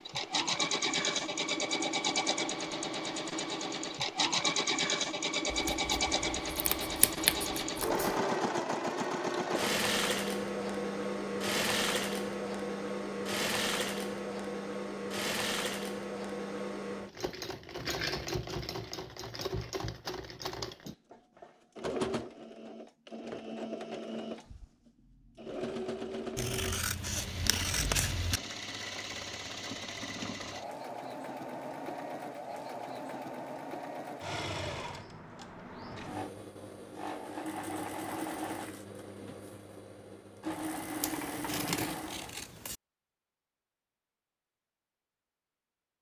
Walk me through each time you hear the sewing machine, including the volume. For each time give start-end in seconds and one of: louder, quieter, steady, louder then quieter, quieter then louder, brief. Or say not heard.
0.0-42.5 quieter.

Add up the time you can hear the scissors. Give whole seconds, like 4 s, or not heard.
6 s.